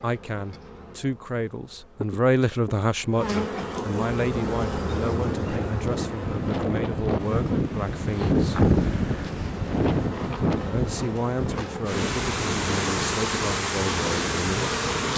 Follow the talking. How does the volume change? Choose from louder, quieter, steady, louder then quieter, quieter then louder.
quieter.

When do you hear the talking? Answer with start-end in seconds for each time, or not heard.
0.0-8.7, 10.6-15.1.